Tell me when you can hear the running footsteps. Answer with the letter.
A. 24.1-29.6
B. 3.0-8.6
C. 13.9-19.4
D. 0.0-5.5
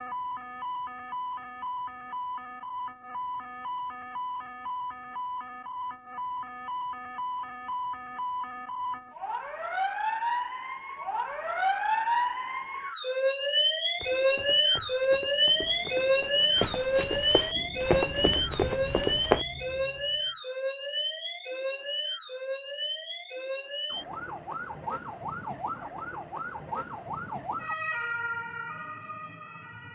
C.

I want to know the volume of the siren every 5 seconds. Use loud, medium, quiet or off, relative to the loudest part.
medium, medium, loud, loud, medium, medium.